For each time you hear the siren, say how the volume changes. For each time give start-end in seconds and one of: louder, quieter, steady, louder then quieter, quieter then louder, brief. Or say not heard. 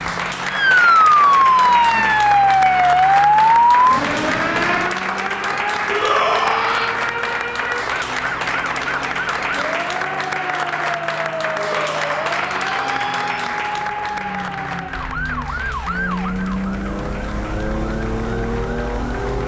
0.0-19.1 quieter.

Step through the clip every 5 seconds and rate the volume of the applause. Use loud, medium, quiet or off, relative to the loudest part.
loud, loud, loud, quiet.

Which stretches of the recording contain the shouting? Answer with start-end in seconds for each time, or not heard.
5.8-7.0, 11.6-13.3.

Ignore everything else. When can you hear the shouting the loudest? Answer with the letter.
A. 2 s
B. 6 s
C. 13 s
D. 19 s
B.